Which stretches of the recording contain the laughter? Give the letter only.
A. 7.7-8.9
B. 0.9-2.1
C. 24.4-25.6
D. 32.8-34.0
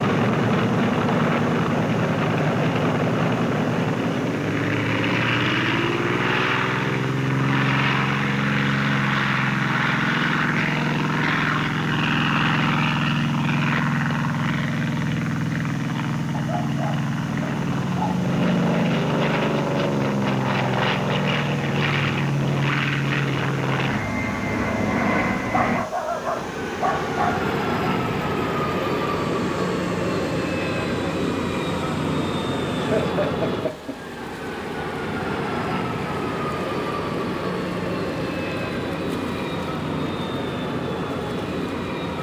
D.